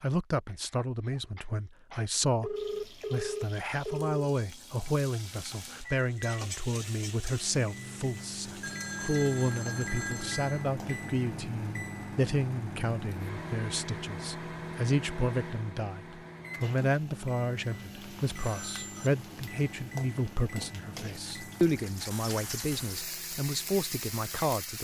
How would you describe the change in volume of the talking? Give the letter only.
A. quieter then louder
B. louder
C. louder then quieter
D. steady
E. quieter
D.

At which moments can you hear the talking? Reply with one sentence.
You can hear the talking from 0.0 to 24.7 s.